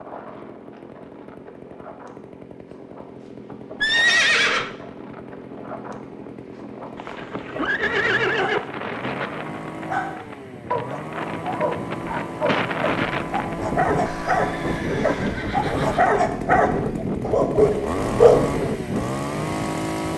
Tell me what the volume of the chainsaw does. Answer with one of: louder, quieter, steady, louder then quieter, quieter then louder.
louder.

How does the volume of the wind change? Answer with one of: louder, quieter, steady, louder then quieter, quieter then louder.
louder.